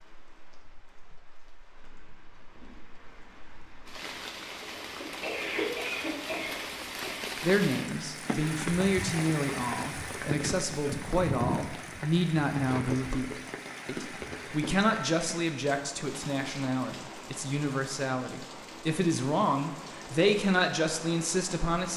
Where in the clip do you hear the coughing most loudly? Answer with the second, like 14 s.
6 s.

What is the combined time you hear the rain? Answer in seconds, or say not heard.
22 s.